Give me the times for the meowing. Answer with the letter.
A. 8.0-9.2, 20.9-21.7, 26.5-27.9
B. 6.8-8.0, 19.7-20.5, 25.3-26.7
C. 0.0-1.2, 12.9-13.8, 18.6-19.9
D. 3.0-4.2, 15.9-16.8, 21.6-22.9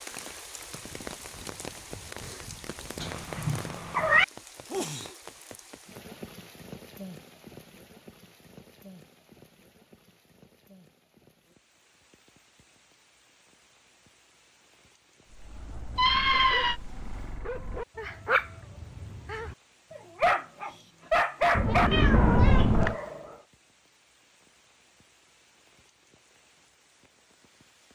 D.